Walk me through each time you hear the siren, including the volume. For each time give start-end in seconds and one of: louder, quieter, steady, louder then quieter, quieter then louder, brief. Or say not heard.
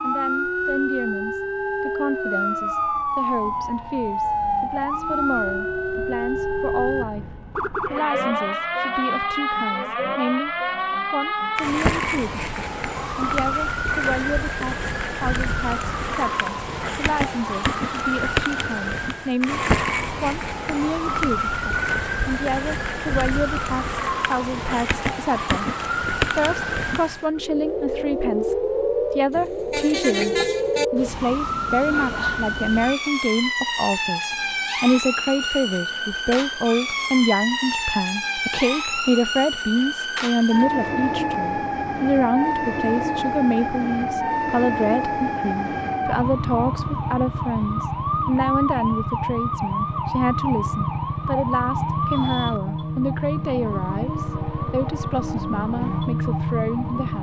0.0-57.1 steady.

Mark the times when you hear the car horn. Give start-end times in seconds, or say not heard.
29.3-30.9.